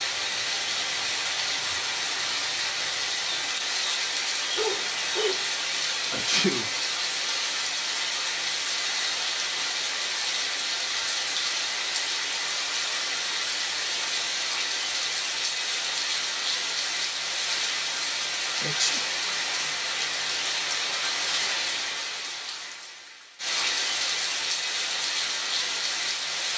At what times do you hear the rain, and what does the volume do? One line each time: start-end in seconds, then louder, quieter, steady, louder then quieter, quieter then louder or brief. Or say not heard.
0.0-26.5 steady.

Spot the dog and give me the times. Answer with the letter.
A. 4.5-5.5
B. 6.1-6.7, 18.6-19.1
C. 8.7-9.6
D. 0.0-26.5
A.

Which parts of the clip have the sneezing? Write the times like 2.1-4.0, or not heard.
6.1-6.7, 18.6-19.1.